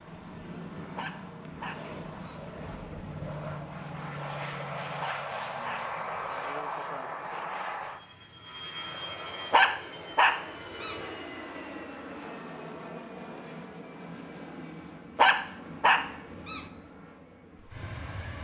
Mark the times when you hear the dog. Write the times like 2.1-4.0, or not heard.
0.9-2.5, 5.0-6.5, 9.5-11.0, 15.2-16.6.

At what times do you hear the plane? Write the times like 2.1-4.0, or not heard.
0.0-18.3.